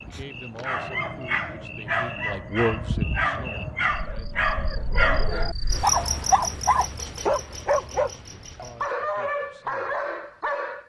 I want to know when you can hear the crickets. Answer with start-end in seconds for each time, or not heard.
0.0-8.9.